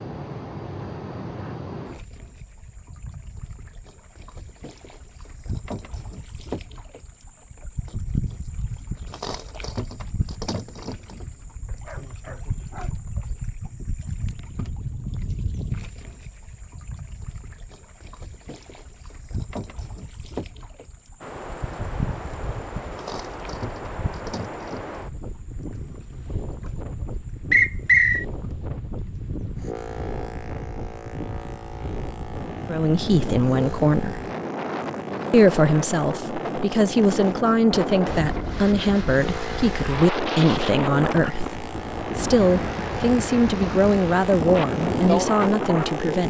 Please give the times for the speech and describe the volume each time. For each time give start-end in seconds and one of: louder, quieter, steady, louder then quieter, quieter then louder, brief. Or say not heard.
32.6-34.2 brief
35.3-46.2 steady.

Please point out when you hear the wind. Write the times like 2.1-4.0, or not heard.
21.2-46.2.